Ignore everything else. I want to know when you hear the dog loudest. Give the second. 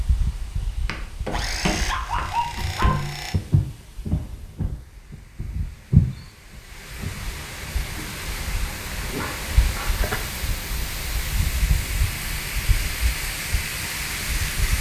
2 s.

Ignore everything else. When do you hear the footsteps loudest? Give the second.
6 s.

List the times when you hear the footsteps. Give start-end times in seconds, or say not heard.
0.8-7.2.